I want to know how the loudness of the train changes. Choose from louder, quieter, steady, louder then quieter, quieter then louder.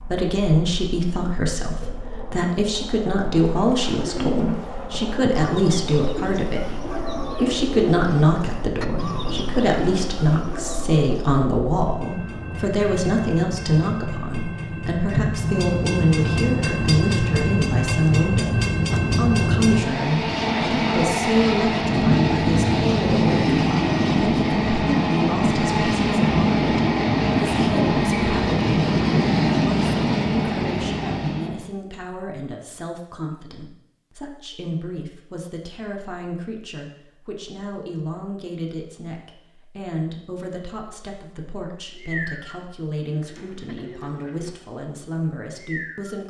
louder.